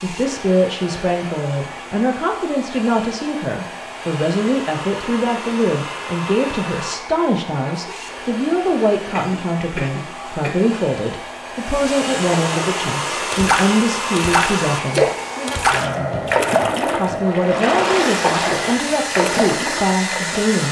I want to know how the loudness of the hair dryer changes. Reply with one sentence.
The volume of the hair dryer goes up.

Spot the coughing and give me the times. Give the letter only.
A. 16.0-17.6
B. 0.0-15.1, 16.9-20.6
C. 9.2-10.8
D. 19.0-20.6
C.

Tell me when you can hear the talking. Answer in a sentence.
You can hear the talking from 0.0 to 15.1 s and from 16.9 to 20.6 s.